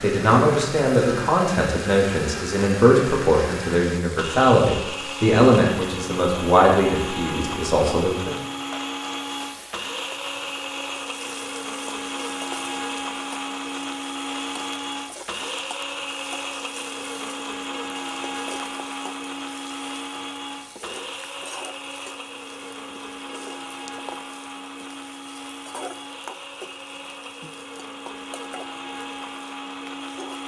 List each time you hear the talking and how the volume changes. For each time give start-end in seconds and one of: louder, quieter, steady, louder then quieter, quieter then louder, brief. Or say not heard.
0.0-8.3 steady.